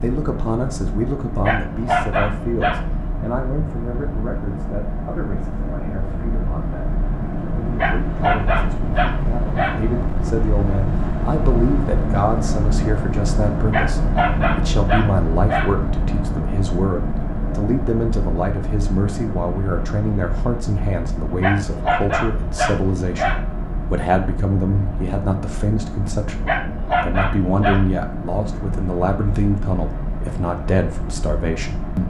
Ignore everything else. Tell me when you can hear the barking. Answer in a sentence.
The barking can be heard from 1.4 to 2.8 s, from 7.8 to 9.8 s, from 13.7 to 15.7 s, from 21.4 to 23.4 s and from 26.4 to 27.8 s.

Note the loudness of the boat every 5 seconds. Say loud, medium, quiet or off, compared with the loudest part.
medium, loud, loud, loud, medium, medium, medium.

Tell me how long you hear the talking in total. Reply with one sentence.
The talking can be heard for 32 seconds in total.